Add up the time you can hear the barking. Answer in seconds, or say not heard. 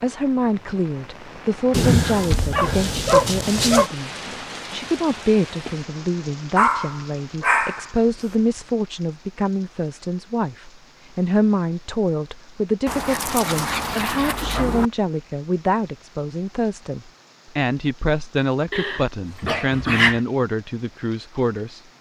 7 s.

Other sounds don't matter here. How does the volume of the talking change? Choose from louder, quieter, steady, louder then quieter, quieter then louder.
steady.